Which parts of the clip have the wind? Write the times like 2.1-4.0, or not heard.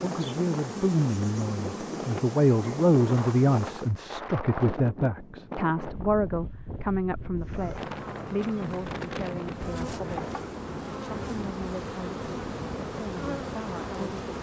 0.0-14.2.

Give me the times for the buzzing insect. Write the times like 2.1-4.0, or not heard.
0.0-4.0, 7.3-14.3.